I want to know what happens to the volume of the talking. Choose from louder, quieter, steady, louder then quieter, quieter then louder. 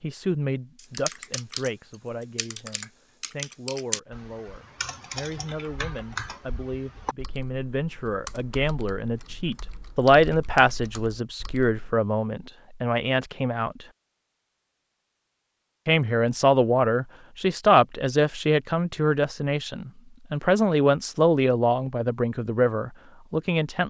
louder.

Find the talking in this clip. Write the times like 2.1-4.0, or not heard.
0.0-13.8, 15.8-23.8.